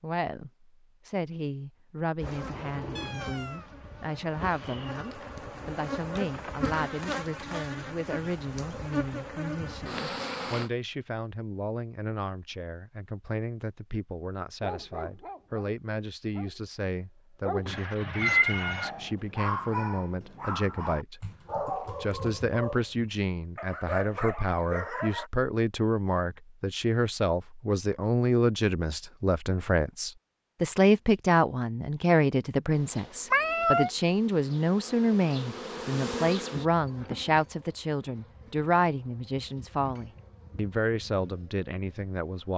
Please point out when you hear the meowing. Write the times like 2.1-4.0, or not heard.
3.0-3.7, 17.6-18.9, 33.3-33.9.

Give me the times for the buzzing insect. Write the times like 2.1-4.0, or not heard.
2.2-10.7, 32.7-42.5.